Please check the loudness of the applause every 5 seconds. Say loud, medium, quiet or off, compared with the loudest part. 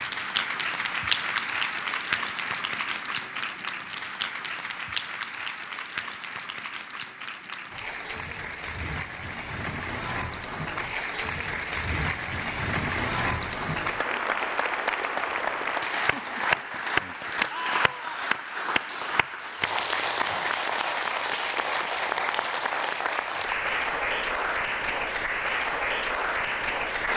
loud, medium, loud, loud, loud, loud.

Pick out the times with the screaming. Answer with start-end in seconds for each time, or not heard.
17.5-18.2.